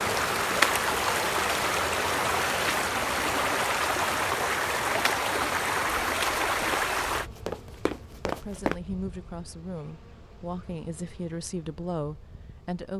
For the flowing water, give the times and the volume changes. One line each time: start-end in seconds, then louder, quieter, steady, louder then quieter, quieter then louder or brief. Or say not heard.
0.0-7.3 steady.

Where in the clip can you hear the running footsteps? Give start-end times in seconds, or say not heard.
7.2-8.8.